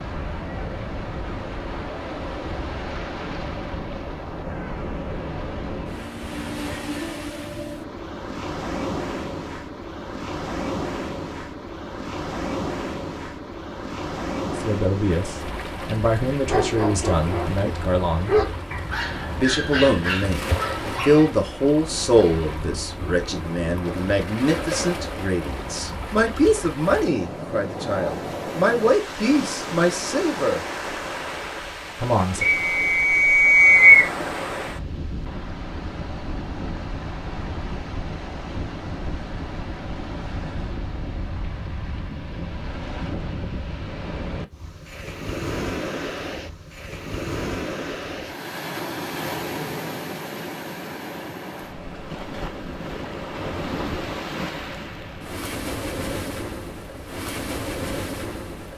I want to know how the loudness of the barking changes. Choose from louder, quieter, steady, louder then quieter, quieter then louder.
louder then quieter.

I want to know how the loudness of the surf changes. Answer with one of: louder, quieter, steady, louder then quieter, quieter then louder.
steady.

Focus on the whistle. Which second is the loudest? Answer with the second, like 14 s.
34 s.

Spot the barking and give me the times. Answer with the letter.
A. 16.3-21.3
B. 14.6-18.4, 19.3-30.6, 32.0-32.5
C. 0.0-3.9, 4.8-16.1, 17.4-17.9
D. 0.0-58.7
A.